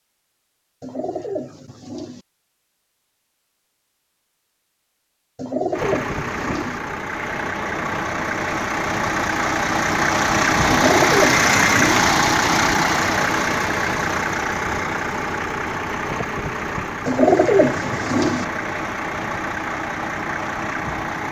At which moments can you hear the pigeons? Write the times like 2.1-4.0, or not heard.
0.8-2.2, 5.3-6.8, 10.7-12.0, 17.1-18.4.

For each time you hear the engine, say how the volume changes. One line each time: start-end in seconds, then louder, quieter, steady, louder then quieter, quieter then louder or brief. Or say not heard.
5.7-21.2 louder then quieter.